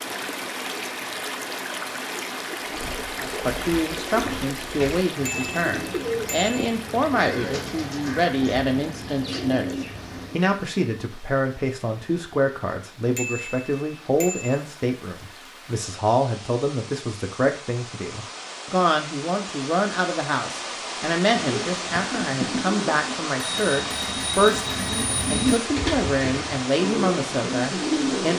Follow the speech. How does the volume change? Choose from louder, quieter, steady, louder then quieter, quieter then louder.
steady.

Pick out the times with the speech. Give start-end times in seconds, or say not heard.
3.2-28.3.